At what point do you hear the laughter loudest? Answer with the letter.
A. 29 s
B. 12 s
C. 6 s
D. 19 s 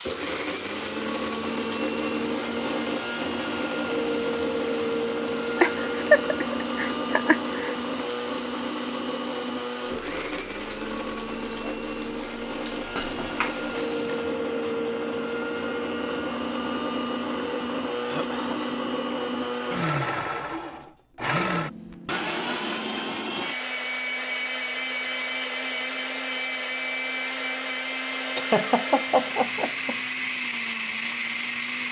C.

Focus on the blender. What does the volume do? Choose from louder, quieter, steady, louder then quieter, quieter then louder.
steady.